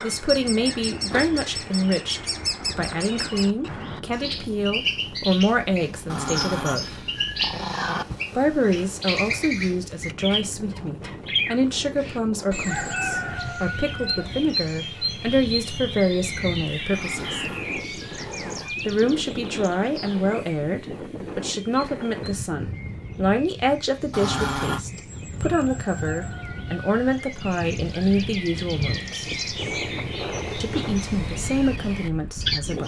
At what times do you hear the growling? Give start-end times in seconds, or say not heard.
6.0-8.1, 16.9-18.8, 24.1-24.9.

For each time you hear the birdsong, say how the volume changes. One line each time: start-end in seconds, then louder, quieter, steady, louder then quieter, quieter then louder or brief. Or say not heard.
0.0-32.8 quieter then louder.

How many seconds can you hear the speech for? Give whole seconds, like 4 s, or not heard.
29 s.